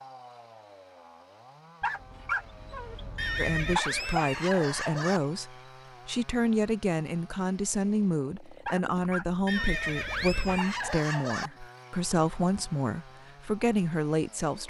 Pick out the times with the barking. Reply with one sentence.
The barking can be heard from 1.8 to 4.2 s and from 8.7 to 10.8 s.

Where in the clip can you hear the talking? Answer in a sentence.
You can hear the talking from 3.4 to 14.6 s.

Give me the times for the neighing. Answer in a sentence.
You can hear the neighing from 3.1 to 5.2 s and from 9.4 to 11.5 s.